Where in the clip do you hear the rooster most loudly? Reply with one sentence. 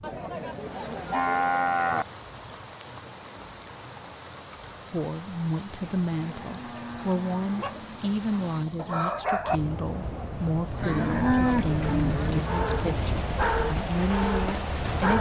The volume of the rooster peaks at 9 seconds.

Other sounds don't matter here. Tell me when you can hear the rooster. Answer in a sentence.
The rooster can be heard from 7.5 to 9.6 s.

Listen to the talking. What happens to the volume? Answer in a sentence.
The loudness of the talking stays about the same.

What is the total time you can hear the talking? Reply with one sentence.
You can hear the talking for 10 seconds altogether.